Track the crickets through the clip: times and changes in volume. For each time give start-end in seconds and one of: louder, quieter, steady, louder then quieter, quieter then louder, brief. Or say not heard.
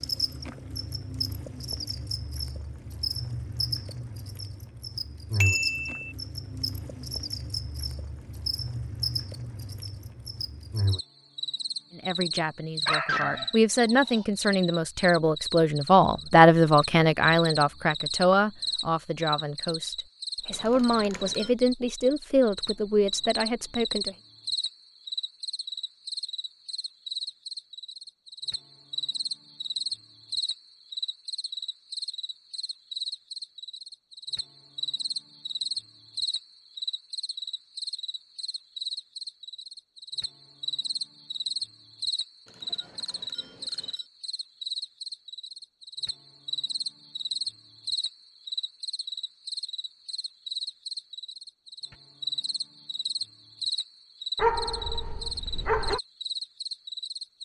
0.0-57.4 steady.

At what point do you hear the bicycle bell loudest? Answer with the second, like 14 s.
6 s.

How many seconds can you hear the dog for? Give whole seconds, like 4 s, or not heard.
3 s.